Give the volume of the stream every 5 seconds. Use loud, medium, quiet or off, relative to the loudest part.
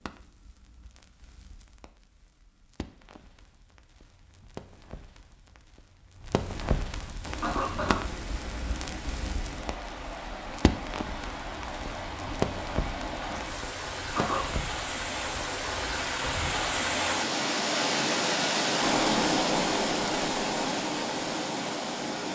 off, quiet, medium, loud, loud.